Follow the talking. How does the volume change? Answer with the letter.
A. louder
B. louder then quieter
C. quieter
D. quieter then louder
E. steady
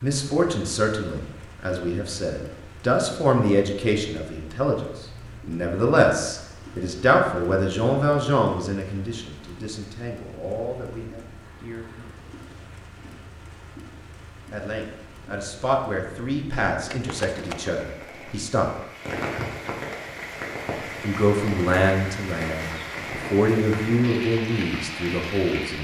D.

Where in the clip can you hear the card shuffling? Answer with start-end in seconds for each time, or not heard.
16.9-17.8.